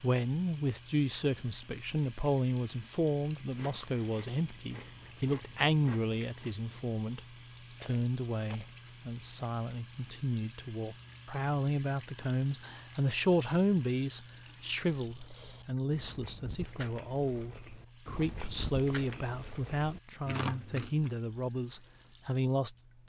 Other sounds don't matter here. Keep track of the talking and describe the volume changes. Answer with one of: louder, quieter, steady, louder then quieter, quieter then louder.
steady.